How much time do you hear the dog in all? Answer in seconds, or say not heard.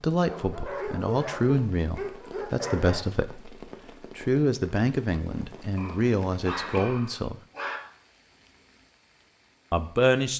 5 s.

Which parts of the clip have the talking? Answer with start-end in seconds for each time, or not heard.
0.0-7.3, 9.7-10.3.